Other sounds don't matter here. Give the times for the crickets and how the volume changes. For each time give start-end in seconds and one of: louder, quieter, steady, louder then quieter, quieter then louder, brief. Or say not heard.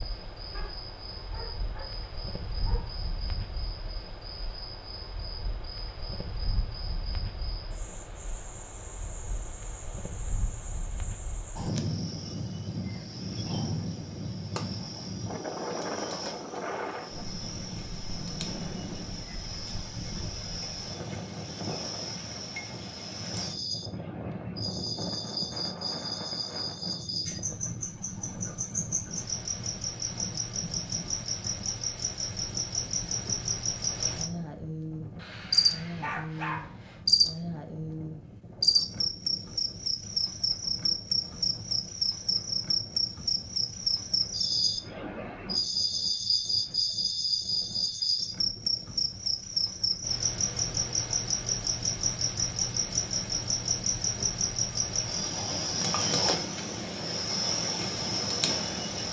0.0-59.0 louder.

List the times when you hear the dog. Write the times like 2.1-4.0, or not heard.
0.5-2.9, 35.1-37.0.